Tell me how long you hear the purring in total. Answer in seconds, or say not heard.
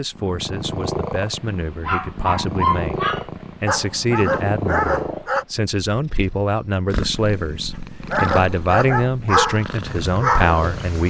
11 s.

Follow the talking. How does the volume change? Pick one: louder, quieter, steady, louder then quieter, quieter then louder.
louder.